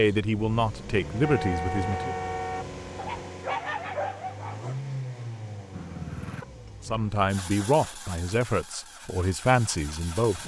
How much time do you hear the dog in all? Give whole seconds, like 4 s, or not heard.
2 s.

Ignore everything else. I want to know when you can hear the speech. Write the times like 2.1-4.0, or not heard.
0.0-2.1, 6.8-10.4.